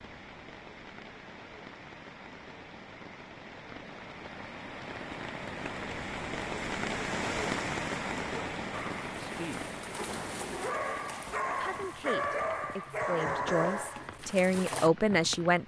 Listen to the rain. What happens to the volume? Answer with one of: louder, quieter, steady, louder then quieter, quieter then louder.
louder then quieter.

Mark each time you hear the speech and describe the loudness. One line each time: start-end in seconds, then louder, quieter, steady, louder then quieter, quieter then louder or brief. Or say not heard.
9.2-9.7 brief
11.6-15.6 louder.